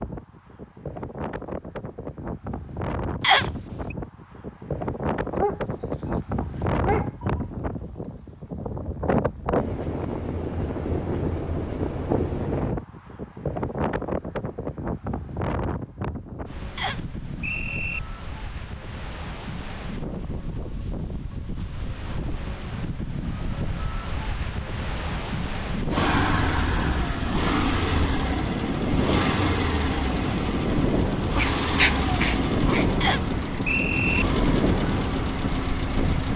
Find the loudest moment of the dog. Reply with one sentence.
The volume of the dog peaks at 32 seconds.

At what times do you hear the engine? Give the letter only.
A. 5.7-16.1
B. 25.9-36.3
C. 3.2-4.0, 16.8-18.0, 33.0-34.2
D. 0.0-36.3
B.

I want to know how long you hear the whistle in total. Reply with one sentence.
The whistle can be heard for 3 seconds in total.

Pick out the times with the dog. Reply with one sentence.
The dog can be heard from 5.3 to 7.4 s and from 31.4 to 32.9 s.